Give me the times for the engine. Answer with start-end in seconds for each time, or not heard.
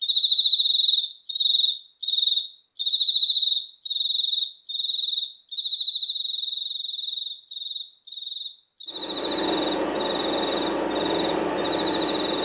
8.9-12.3.